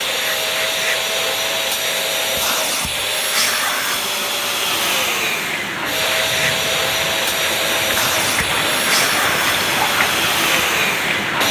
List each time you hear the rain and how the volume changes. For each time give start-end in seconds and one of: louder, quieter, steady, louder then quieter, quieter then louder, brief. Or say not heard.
4.7-11.4 louder.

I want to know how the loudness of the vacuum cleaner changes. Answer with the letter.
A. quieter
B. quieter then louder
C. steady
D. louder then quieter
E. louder
C.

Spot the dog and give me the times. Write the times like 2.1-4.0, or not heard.
not heard.